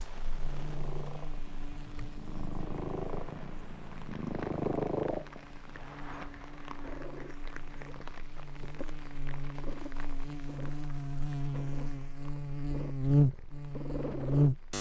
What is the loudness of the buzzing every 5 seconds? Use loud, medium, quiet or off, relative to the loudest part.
quiet, quiet, loud.